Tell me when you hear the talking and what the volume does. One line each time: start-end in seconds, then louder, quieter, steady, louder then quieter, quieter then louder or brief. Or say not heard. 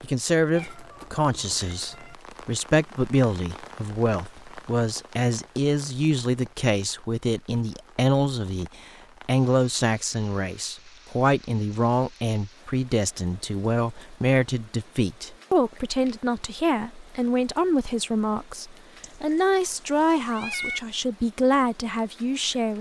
0.0-22.7 steady.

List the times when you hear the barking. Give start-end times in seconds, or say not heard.
not heard.